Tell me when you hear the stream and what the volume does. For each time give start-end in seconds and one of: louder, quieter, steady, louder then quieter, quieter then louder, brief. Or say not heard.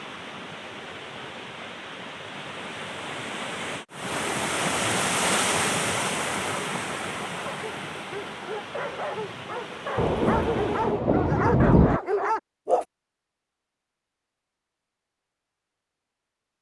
0.0-11.1 louder then quieter.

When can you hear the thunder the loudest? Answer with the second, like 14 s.
12 s.